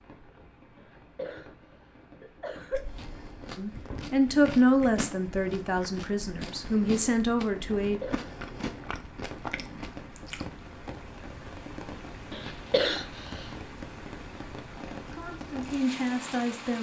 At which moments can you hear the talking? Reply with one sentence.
You can hear the talking from 3.5 to 8.0 s and from 15.1 to 16.7 s.